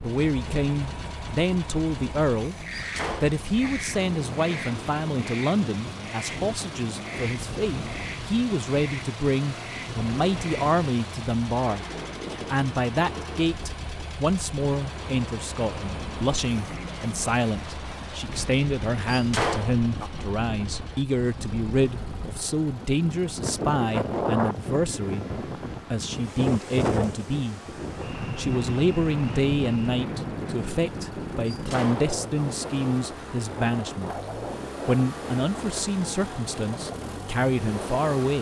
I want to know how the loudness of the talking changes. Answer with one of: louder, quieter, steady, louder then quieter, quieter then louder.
steady.